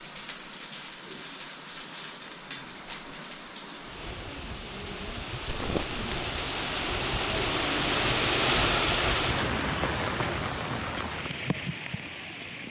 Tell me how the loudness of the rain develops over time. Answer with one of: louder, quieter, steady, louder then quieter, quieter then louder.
louder then quieter.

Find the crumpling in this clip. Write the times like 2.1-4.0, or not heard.
5.5-6.2.